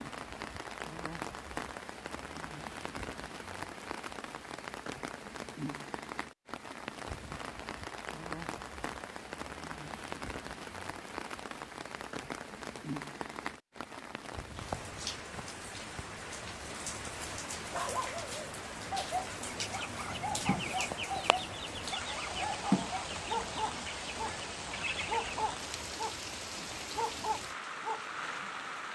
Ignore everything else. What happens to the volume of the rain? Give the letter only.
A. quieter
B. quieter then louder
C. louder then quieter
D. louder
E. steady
E.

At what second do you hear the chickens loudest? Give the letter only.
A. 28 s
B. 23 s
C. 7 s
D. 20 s
B.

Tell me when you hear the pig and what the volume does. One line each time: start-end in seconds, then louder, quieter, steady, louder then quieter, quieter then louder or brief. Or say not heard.
not heard.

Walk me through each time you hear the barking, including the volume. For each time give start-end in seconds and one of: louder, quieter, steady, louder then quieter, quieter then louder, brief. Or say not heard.
17.6-28.5 steady.